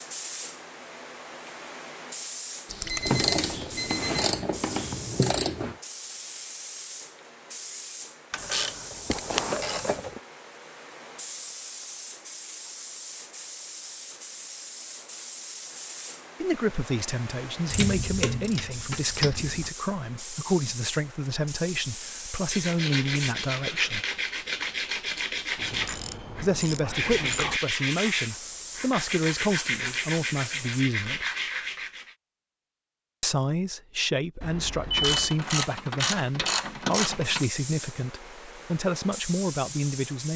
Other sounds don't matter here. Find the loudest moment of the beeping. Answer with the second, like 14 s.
35 s.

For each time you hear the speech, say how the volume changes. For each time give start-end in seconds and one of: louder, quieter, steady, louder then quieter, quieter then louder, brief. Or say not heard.
16.4-24.0 steady
26.4-31.2 steady
33.2-40.3 steady.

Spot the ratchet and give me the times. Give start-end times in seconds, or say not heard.
3.0-5.8, 8.3-10.2, 17.7-19.7, 25.6-27.6, 35.0-37.5.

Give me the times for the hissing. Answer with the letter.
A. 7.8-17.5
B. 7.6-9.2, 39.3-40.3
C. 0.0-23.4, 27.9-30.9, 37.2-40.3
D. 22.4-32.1
C.